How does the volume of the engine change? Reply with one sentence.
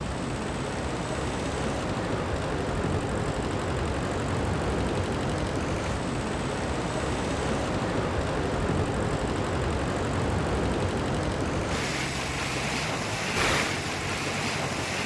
The loudness of the engine stays about the same.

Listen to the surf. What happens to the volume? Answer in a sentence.
The loudness of the surf stays about the same.